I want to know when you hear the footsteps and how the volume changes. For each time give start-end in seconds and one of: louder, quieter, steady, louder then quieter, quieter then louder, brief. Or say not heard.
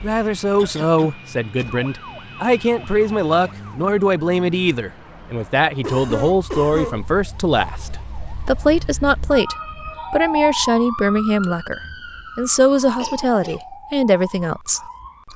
not heard.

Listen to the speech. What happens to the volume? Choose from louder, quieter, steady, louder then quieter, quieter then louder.
steady.